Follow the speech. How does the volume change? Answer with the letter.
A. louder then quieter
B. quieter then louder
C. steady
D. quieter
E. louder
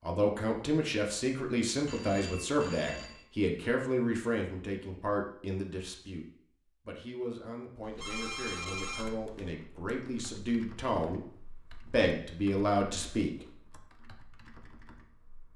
B.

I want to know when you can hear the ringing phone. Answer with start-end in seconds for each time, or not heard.
1.9-3.2, 7.8-9.6.